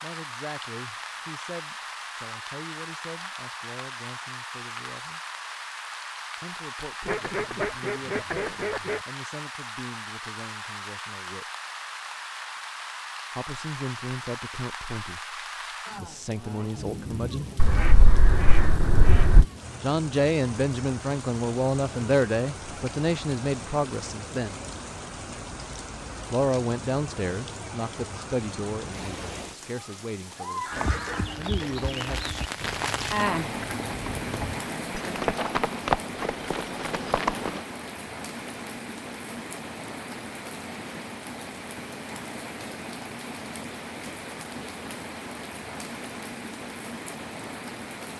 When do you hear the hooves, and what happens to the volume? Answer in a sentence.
The hooves can be heard from 30.7 to 37.6 s, getting louder then quieter.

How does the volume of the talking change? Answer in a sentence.
The volume of the talking goes up, then down.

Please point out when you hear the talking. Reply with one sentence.
You can hear the talking from 0.0 to 5.2 s, from 6.4 to 11.4 s, from 13.3 to 17.5 s, from 19.8 to 24.6 s and from 26.3 to 32.5 s.